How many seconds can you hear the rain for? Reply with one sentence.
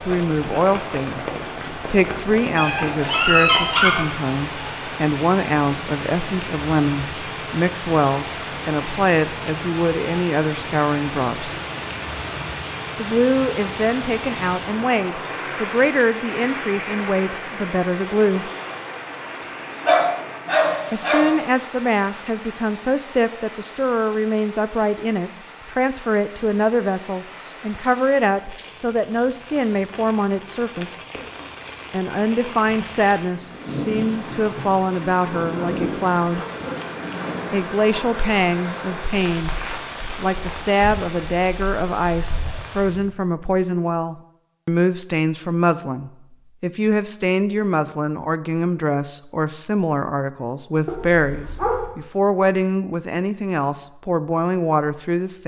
The rain can be heard for 43 seconds in total.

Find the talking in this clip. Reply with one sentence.
You can hear the talking from 0.0 to 11.6 s, from 12.9 to 18.5 s, from 20.9 to 31.0 s, from 31.9 to 36.5 s and from 37.5 to 55.4 s.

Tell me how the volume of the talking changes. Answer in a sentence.
The loudness of the talking stays about the same.